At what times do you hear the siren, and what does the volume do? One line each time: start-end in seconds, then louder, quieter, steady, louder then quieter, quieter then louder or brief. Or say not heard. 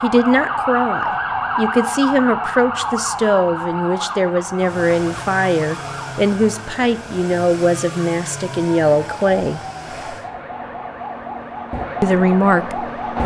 0.0-13.2 quieter then louder.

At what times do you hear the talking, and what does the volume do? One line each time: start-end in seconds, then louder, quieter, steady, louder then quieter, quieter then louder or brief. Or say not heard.
0.0-9.6 steady
12.0-13.2 brief.